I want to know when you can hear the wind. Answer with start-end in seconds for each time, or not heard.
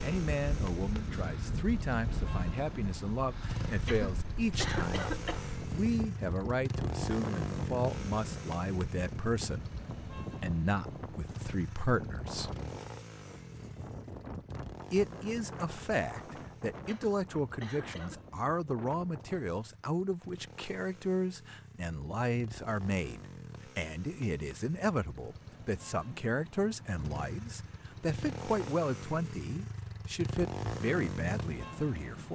0.0-19.5.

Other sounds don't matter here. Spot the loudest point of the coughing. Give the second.
5 s.